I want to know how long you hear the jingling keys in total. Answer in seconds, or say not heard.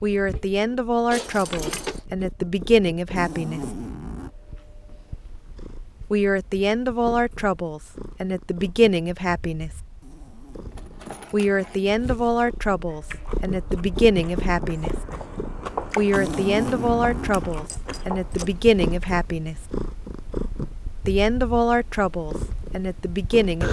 3 s.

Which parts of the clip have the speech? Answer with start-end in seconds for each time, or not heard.
0.0-3.6, 6.1-9.7, 11.3-14.9, 15.9-19.6, 21.1-23.6.